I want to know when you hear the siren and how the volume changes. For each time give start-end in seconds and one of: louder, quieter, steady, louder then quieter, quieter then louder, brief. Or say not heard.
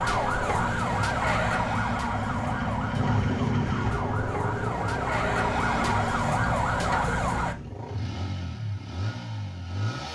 0.0-7.5 quieter then louder.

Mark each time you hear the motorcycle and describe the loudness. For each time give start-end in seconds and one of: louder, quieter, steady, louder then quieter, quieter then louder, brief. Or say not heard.
0.0-10.1 louder then quieter.